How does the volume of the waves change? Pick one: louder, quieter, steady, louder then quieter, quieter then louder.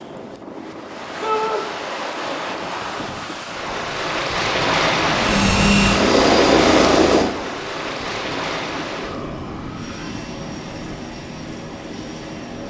louder then quieter.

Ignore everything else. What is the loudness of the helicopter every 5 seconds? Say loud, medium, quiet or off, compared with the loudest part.
off, loud, quiet.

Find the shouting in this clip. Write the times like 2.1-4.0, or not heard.
1.2-1.6, 9.0-10.2.